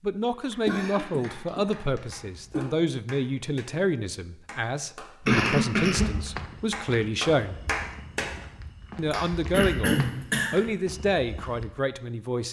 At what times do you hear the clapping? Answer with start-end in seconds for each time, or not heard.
0.2-3.6, 4.5-6.0, 6.7-8.2, 9.1-9.8.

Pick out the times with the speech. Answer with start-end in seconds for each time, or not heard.
0.0-7.5, 8.9-12.4.